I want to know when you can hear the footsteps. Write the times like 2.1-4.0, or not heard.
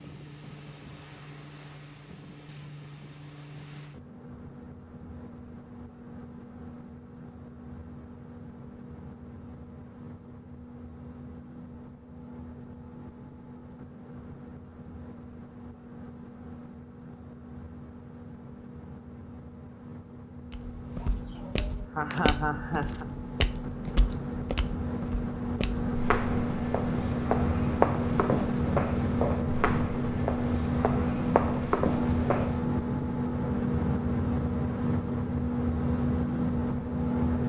20.5-32.6.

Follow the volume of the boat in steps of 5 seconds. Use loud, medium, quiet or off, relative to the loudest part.
quiet, quiet, quiet, quiet, medium, loud, loud, loud.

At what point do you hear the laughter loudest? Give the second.
22 s.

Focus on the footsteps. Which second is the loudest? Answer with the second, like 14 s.
28 s.